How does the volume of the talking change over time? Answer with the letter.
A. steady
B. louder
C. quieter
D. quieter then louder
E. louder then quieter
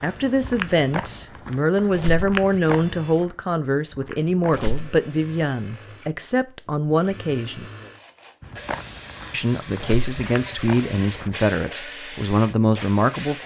A.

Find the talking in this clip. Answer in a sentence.
The talking can be heard from 0.0 to 7.7 s and from 9.3 to 13.4 s.